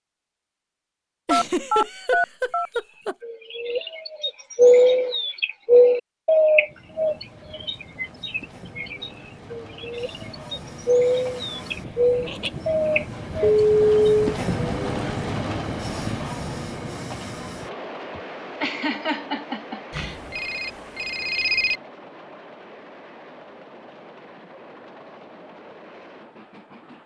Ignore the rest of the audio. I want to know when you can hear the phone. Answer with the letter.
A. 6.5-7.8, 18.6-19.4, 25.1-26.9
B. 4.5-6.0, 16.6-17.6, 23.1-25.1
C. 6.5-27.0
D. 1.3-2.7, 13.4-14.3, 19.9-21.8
D.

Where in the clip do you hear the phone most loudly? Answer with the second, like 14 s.
14 s.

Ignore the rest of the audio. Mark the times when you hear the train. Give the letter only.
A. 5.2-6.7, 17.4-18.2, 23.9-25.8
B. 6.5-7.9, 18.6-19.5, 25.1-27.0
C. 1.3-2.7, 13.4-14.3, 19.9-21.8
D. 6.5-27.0
D.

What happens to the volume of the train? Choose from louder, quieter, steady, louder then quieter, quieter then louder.
louder then quieter.